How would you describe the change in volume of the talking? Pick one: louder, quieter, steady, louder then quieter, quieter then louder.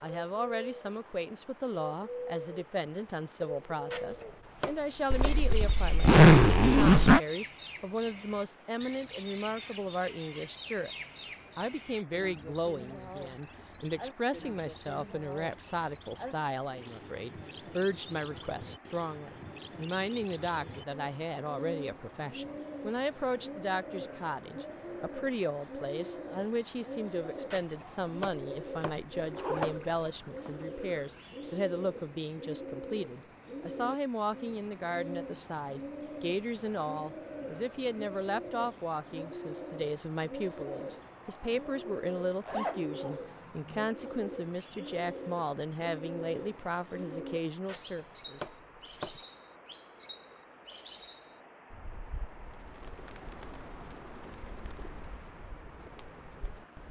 steady.